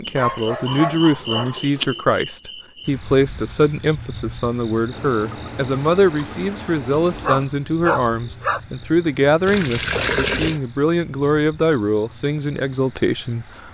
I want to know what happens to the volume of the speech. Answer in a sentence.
The volume of the speech stays about the same.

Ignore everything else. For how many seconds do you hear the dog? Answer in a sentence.
You can hear the dog for 3 seconds altogether.